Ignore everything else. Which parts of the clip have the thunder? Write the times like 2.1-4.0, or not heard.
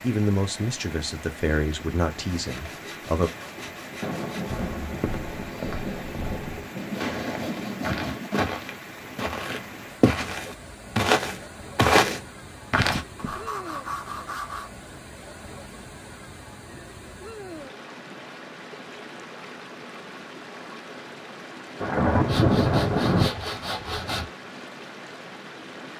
4.0-8.0, 21.8-23.3.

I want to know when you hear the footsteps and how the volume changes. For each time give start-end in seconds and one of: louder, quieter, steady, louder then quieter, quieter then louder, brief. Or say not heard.
4.5-13.3 louder.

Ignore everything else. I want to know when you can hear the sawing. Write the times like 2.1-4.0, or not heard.
2.2-4.7, 6.8-8.3, 13.2-14.7, 22.2-24.2.